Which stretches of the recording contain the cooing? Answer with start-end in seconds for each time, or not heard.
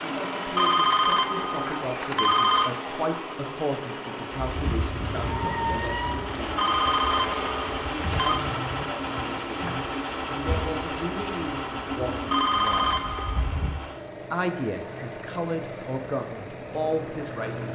4.5-13.8.